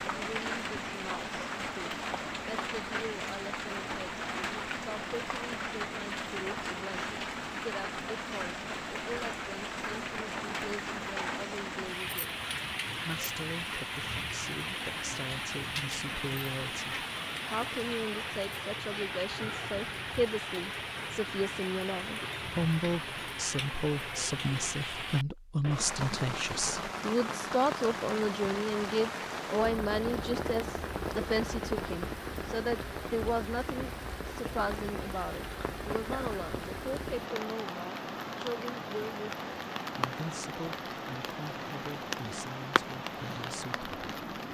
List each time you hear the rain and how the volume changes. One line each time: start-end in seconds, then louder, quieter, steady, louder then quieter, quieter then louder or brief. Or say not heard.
0.0-44.4 steady.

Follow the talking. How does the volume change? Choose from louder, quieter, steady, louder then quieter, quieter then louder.
louder then quieter.